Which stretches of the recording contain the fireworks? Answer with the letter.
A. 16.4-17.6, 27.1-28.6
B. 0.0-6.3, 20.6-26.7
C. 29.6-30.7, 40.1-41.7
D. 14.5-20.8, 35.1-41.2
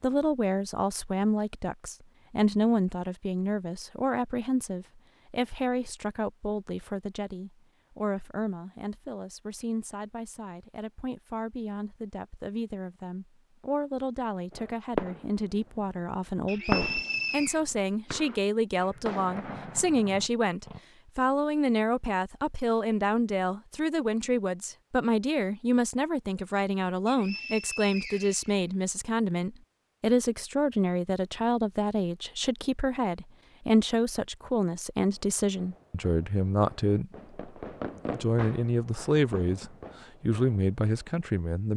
D.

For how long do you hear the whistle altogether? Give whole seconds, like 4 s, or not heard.
3 s.